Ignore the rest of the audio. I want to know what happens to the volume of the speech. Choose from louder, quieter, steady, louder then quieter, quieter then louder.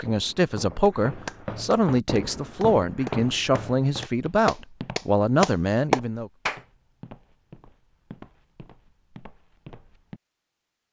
steady.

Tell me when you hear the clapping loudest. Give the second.
6 s.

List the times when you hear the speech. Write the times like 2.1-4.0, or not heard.
0.0-6.3.